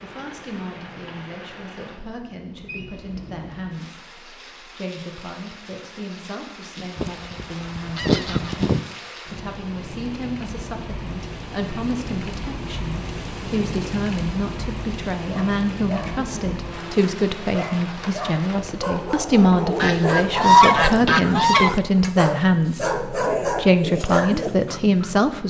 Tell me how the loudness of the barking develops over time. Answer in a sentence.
The loudness of the barking goes up.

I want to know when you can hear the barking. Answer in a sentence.
You can hear the barking from 15.2 to 25.1 s.